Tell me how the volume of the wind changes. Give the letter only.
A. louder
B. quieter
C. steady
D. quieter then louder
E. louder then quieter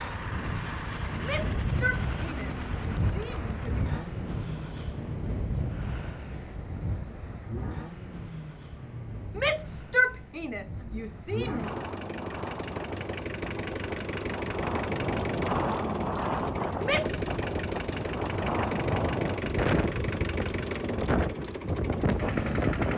D.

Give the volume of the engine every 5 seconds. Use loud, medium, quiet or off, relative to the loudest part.
medium, medium, loud, loud, loud.